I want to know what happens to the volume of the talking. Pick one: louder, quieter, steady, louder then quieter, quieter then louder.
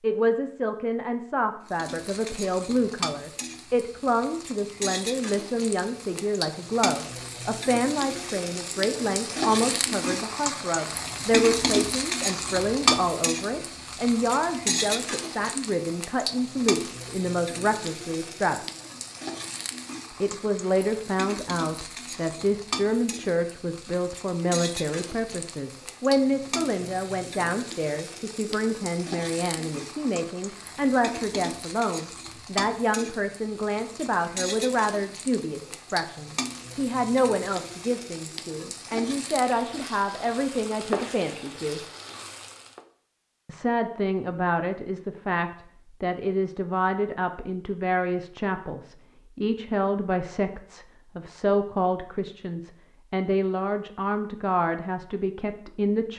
steady.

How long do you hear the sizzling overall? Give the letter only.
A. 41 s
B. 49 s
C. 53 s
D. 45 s
A.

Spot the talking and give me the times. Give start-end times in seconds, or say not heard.
0.0-18.6, 20.2-41.8, 43.5-56.1.